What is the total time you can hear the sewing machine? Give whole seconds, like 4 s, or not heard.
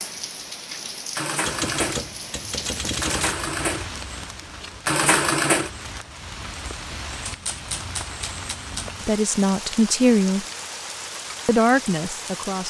6 s.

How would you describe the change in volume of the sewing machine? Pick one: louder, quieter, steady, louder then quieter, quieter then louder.
louder.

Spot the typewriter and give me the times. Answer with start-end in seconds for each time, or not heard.
1.4-3.4, 7.2-8.9.